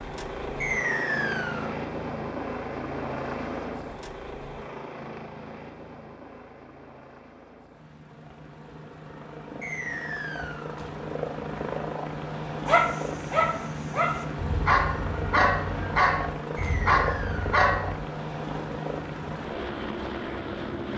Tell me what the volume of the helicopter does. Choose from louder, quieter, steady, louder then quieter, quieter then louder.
quieter then louder.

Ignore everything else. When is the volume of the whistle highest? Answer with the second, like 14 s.
1 s.